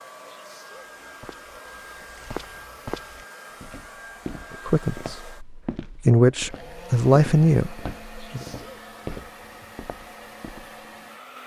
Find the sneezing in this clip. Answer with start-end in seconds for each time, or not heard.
0.2-0.8, 8.2-8.8.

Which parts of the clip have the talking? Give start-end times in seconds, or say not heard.
4.5-8.4.